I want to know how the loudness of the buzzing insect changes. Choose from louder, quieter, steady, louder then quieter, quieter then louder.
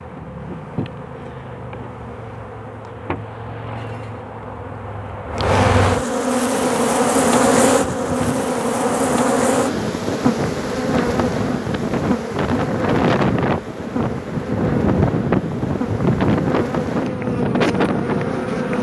louder then quieter.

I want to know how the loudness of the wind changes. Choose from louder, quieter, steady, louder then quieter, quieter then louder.
louder.